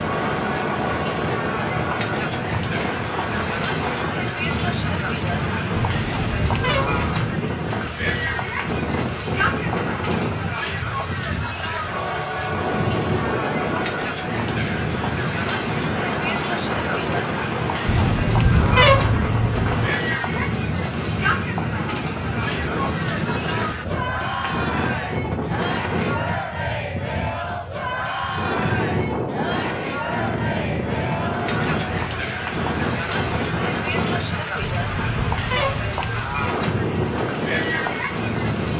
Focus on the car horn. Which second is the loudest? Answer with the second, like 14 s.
19 s.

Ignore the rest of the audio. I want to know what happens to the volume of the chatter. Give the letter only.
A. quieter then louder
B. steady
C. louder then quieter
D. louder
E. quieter
B.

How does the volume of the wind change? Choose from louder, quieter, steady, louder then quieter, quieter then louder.
steady.